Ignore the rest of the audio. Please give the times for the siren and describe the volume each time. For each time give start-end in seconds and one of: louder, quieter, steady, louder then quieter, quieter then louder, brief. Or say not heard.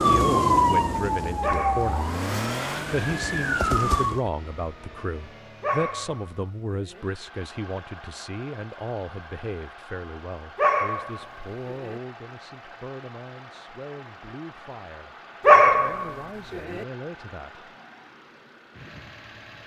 0.0-4.2 quieter then louder.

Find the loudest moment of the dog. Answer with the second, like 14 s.
16 s.